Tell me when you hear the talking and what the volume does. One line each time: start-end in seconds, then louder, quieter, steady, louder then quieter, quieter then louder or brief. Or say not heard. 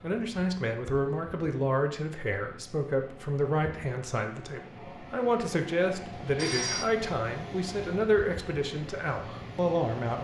0.0-10.1 steady.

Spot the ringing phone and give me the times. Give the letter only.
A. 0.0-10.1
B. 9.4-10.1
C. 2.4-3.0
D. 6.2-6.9
D.